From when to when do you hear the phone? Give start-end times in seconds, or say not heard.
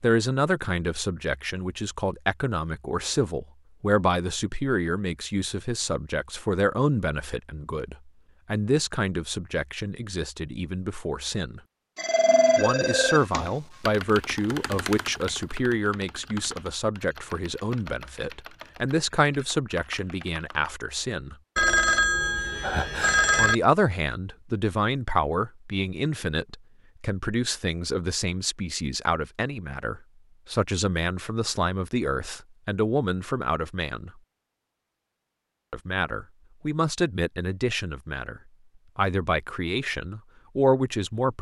11.9-13.6, 21.6-23.6.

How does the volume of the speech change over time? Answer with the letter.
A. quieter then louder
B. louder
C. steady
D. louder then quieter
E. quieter
C.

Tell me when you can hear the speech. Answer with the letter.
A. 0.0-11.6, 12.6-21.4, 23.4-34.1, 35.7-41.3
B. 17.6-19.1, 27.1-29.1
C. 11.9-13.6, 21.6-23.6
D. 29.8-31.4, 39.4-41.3
A.